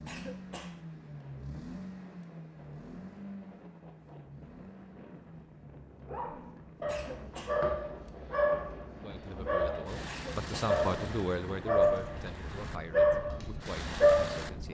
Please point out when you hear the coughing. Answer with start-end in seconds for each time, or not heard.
0.1-0.8, 6.8-7.7, 10.1-10.8.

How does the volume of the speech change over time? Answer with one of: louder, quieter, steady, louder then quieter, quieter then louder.
louder then quieter.